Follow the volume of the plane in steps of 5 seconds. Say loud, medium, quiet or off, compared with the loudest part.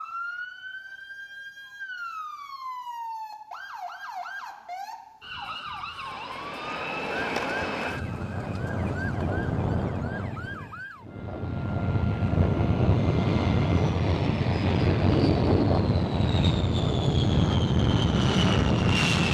off, medium, loud, loud.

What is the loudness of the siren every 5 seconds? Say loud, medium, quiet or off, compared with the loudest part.
loud, loud, medium, off.